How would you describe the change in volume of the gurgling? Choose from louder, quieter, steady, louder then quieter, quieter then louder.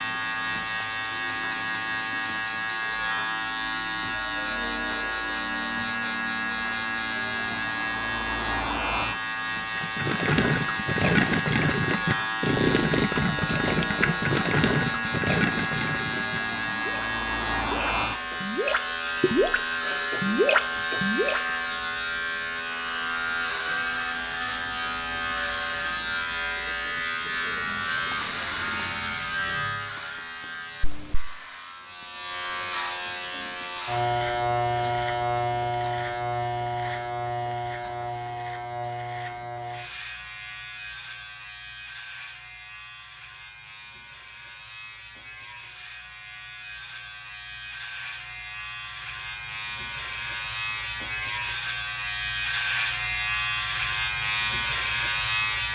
quieter then louder.